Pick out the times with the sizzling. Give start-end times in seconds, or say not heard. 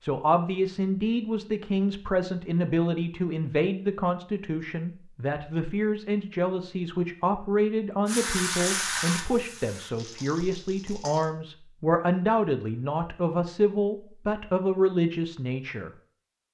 8.1-11.3.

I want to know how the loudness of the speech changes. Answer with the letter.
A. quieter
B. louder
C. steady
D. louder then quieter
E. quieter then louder
C.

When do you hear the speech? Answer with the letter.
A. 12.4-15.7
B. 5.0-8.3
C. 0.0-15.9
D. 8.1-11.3
C.